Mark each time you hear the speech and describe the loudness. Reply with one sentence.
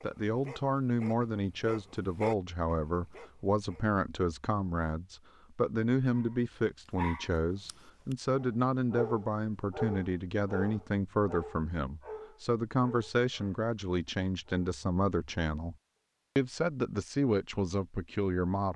The speech can be heard from 0.0 to 15.8 s, at a steady volume; and briefly from 16.4 to 18.7 s.